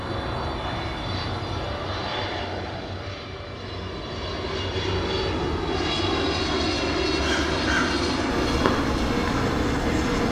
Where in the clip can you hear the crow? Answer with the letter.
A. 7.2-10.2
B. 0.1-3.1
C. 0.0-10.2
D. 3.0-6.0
A.